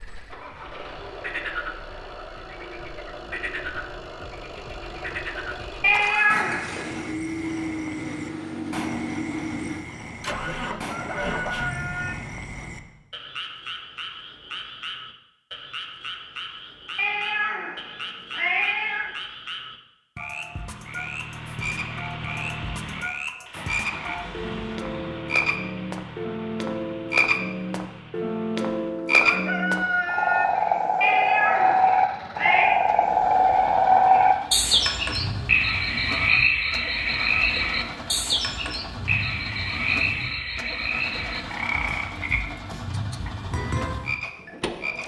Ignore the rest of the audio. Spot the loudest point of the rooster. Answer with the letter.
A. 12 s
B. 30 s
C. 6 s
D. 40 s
B.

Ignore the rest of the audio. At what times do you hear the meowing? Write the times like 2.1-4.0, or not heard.
5.8-6.8, 16.9-19.1, 31.0-32.8.